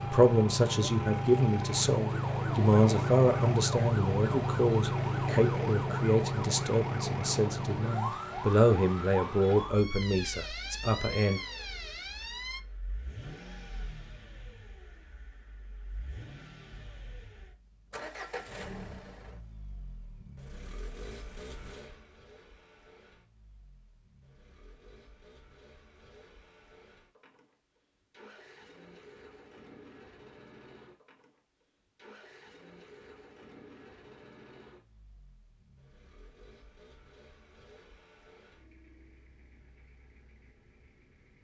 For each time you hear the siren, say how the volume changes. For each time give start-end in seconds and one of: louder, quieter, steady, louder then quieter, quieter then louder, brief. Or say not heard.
0.0-12.6 quieter.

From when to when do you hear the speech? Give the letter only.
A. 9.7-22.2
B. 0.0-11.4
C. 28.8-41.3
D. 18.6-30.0
B.